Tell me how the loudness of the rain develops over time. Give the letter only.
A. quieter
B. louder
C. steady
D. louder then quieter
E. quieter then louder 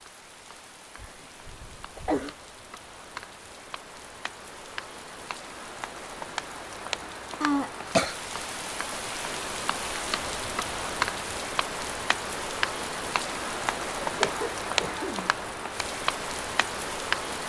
B.